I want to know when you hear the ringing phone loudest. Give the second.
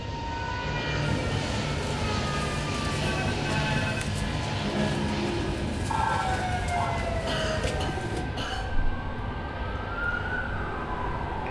6 s.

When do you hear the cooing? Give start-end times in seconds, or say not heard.
1.0-8.2.